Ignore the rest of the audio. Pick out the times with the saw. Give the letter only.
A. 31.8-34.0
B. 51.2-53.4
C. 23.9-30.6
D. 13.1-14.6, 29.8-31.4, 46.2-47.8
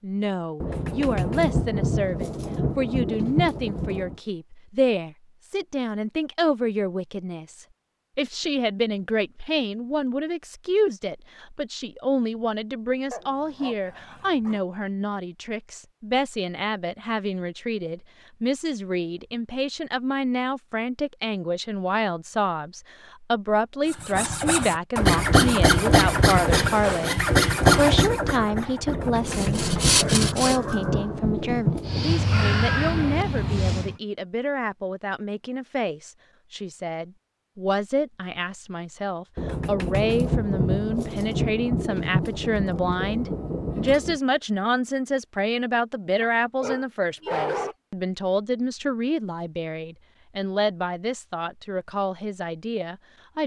C.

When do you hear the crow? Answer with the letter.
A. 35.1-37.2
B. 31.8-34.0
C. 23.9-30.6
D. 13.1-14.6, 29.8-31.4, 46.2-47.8
B.